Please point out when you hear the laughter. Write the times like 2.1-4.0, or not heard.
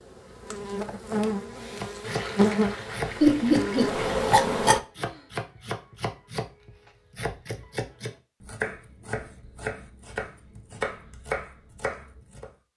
3.2-3.9.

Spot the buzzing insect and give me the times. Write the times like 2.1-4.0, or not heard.
0.0-4.8.